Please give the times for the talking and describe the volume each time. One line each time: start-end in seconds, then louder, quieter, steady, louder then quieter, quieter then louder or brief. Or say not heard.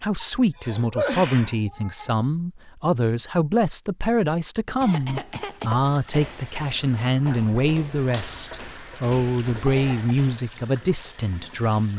0.0-11.9 steady.